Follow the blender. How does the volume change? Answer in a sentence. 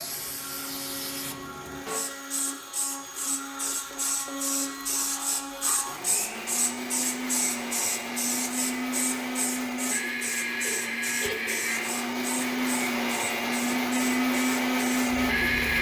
The volume of the blender goes up.